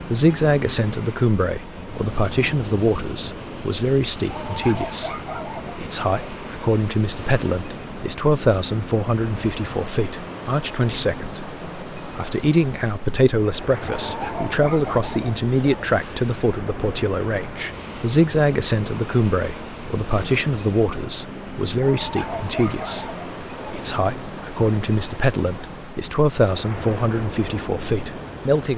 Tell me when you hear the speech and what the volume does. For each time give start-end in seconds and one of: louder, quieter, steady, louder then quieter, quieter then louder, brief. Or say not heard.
0.0-28.7 steady.